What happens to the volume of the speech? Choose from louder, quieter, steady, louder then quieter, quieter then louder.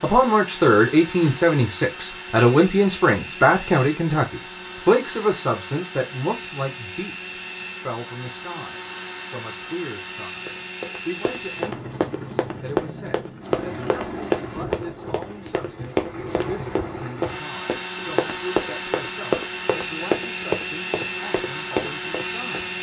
quieter.